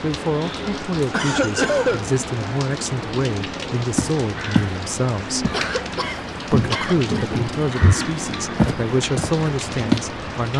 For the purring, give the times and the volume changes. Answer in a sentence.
You can't hear the purring here.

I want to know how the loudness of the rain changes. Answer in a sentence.
The volume of the rain stays about the same.